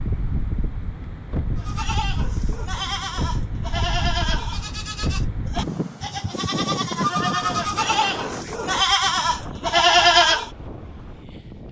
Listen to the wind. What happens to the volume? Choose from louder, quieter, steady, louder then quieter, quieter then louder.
quieter.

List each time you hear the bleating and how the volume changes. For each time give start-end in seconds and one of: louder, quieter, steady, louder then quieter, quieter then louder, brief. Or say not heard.
1.6-10.5 louder.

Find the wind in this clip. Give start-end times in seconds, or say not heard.
0.0-11.6.